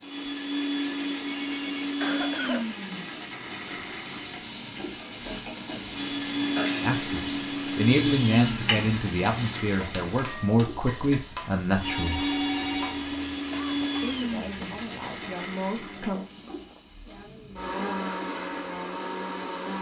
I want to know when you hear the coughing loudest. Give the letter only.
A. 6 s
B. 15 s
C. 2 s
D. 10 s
C.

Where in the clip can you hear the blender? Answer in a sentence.
You can hear the blender from 0.0 to 19.7 s.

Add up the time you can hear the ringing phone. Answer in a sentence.
The ringing phone can be heard for 2 seconds in total.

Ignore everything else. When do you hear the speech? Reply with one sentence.
The speech can be heard from 6.8 to 12.2 s and from 14.0 to 16.2 s.